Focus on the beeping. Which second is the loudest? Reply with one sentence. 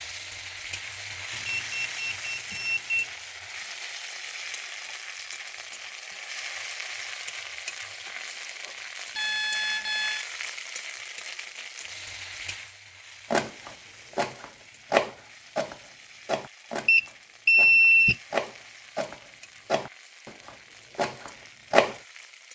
The volume of the beeping peaks at 18 seconds.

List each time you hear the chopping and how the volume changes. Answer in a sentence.
You can hear the chopping from 13.3 to 21.9 s, getting quieter.